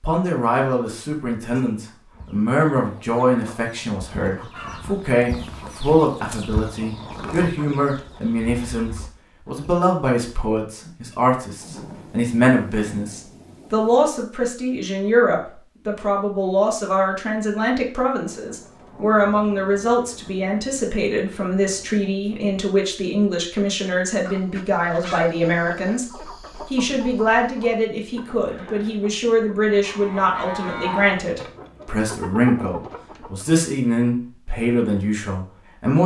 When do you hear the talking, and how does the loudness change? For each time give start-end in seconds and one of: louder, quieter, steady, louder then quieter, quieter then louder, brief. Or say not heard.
0.0-36.0 steady.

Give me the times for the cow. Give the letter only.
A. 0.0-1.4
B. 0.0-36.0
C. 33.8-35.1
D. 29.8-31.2
D.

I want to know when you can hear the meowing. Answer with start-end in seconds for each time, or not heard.
not heard.